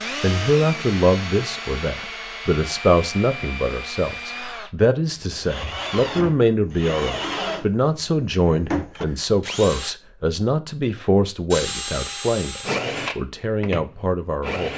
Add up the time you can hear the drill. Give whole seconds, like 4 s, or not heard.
13 s.